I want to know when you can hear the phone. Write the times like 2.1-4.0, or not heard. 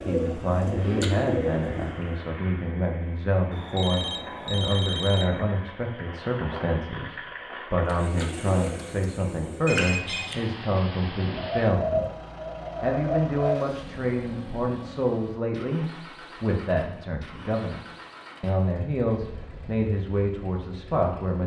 3.5-5.2, 9.7-10.3, 19.4-19.8.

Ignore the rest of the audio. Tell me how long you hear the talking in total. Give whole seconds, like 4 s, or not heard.
20 s.